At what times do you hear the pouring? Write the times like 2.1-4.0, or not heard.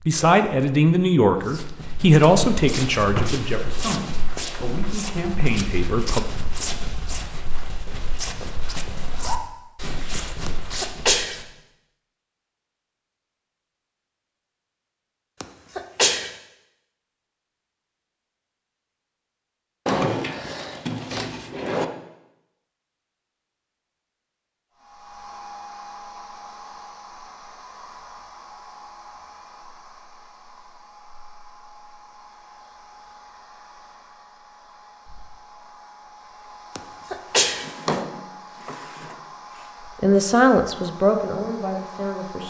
not heard.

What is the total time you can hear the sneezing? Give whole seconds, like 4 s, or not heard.
3 s.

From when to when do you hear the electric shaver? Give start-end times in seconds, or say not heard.
not heard.